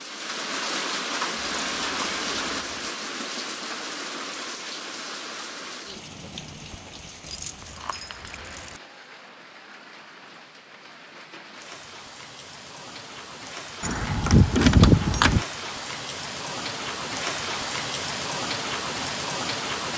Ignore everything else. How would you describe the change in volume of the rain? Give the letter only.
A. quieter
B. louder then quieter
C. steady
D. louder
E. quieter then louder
E.